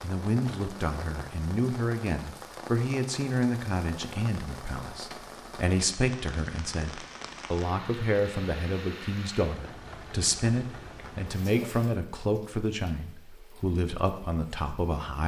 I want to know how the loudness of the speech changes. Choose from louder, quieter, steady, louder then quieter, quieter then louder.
steady.